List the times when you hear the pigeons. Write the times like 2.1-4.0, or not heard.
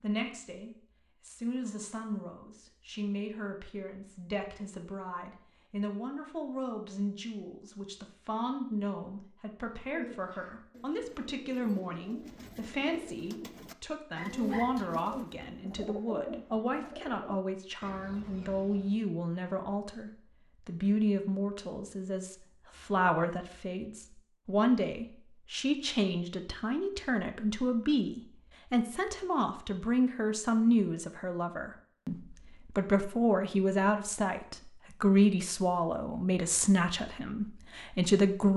9.8-19.1.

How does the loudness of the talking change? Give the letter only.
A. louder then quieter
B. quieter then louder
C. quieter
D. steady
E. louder
E.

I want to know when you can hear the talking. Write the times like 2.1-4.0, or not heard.
0.0-38.5.